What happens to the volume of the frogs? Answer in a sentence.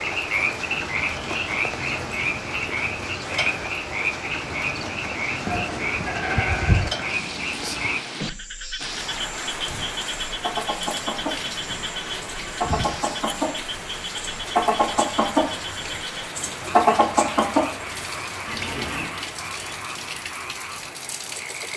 The loudness of the frogs goes down.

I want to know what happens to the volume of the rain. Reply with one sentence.
The loudness of the rain stays about the same.